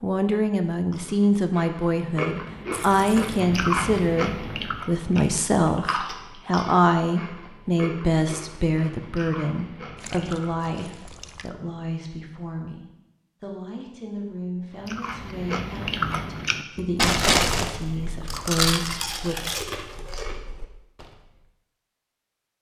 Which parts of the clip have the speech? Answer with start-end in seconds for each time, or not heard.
0.0-19.4.